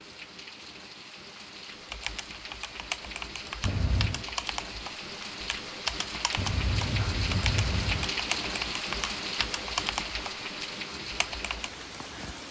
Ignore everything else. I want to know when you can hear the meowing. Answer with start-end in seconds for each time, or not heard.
3.6-4.2, 6.3-8.1.